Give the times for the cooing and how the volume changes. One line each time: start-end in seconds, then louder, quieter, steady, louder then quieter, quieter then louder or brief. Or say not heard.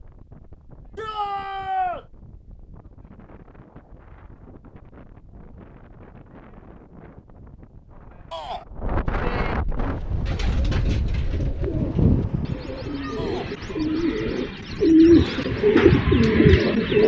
9.8-17.0 louder.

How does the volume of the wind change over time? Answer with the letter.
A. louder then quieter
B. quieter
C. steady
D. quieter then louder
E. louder
E.